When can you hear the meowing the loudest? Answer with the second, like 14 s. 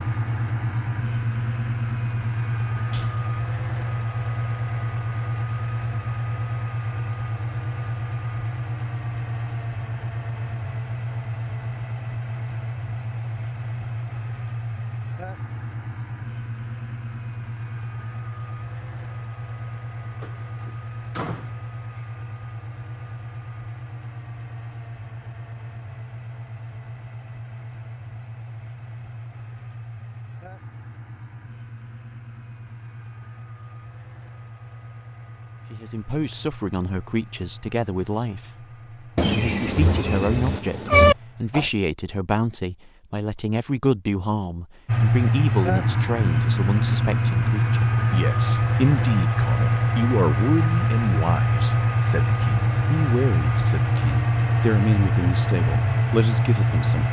41 s.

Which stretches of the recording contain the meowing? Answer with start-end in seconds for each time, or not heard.
39.1-41.1.